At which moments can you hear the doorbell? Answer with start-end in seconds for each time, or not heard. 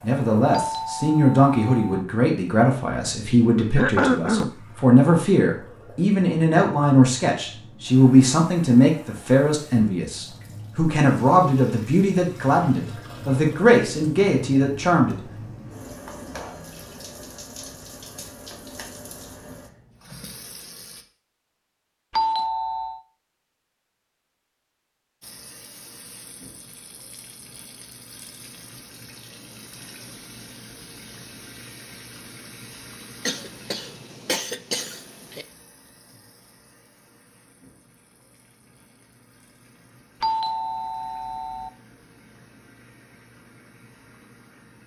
0.5-2.0, 22.1-23.0, 40.2-41.7.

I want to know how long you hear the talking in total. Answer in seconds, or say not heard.
15 s.